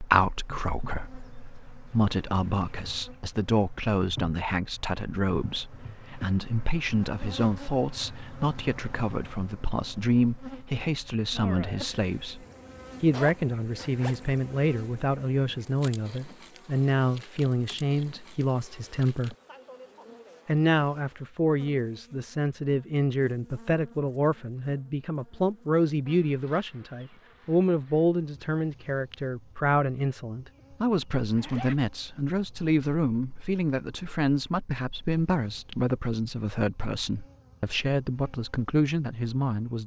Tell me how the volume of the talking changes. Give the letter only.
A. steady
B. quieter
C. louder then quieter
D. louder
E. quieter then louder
A.